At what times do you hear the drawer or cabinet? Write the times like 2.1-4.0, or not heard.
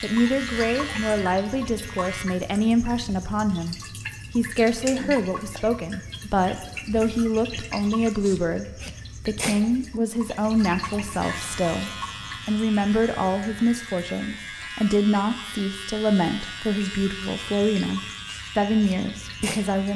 not heard.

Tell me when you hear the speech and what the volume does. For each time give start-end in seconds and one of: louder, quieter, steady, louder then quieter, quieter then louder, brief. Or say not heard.
0.0-19.9 steady.